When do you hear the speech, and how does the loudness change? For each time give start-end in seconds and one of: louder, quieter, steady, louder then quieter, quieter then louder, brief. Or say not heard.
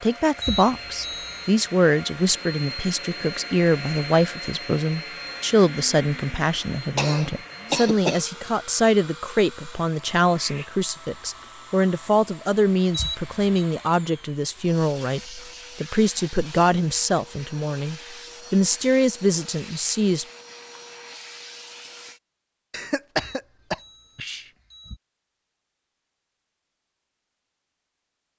0.0-20.2 steady.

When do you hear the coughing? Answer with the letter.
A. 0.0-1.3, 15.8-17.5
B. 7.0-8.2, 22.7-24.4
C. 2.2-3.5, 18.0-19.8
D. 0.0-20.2
B.